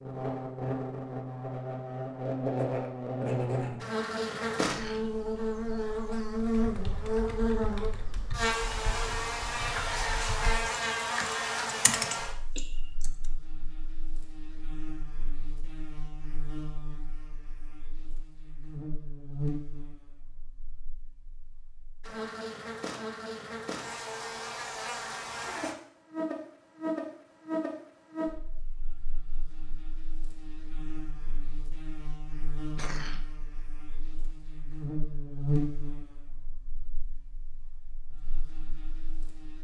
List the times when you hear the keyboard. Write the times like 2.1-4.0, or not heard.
6.3-13.1.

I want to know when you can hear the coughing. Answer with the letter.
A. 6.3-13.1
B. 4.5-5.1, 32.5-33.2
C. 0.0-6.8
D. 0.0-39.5
B.